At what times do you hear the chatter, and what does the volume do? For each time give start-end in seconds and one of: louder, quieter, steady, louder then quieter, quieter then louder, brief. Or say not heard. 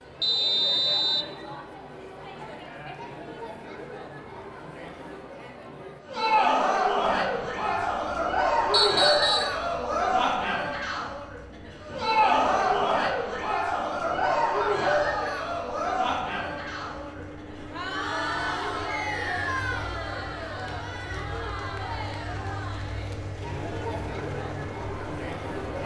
0.0-25.8 louder then quieter.